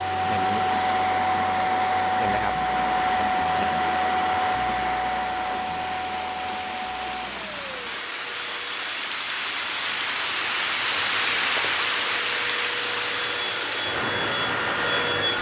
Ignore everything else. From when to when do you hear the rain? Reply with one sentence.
You can hear the rain from 0.0 to 15.2 s.